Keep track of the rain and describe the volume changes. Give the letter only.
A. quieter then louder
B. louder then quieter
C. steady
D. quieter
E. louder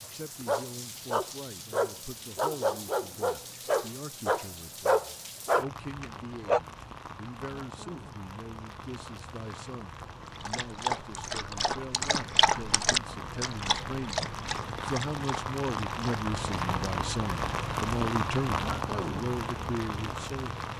E.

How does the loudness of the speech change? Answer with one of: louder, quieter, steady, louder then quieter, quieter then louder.
louder.